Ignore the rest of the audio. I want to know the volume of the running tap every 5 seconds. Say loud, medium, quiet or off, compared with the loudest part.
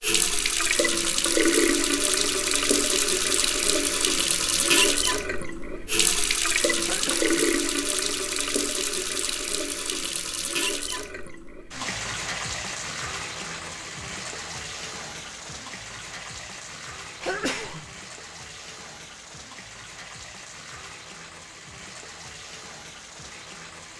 loud, loud, medium, quiet, quiet.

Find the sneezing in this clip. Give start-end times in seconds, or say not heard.
6.8-7.5, 17.2-17.9.